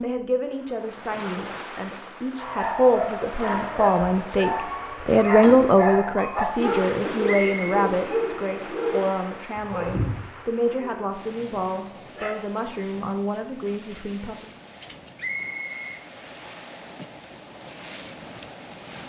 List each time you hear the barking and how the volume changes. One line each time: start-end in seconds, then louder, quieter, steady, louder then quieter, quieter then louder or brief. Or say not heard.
2.4-12.3 quieter.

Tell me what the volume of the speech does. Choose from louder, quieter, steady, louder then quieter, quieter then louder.
louder then quieter.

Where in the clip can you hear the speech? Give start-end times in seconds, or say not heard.
0.0-14.6.